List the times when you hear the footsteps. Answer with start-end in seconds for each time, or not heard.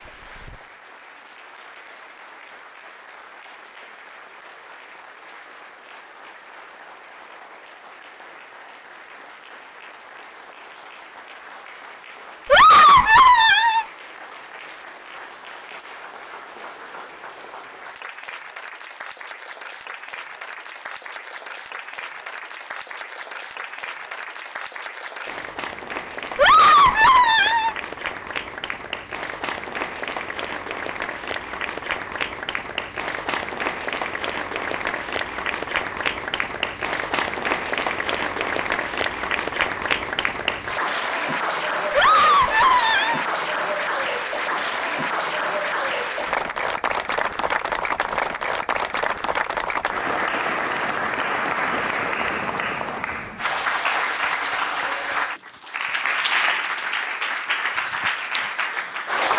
not heard.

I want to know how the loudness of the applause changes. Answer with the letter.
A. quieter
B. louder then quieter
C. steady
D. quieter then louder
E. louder
E.